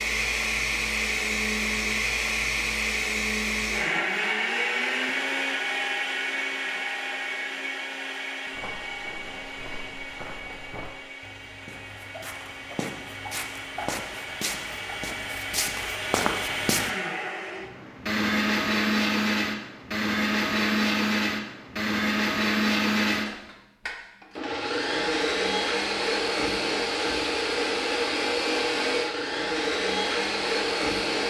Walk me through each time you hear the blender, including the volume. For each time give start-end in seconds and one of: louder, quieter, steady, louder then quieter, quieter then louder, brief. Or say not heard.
0.0-31.2 quieter then louder.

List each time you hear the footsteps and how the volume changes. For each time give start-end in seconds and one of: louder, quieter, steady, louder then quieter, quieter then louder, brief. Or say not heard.
8.5-16.9 louder.